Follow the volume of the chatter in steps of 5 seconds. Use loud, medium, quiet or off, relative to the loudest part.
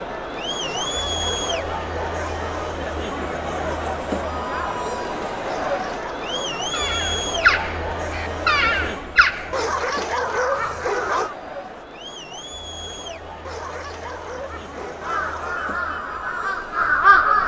loud, loud, medium, medium.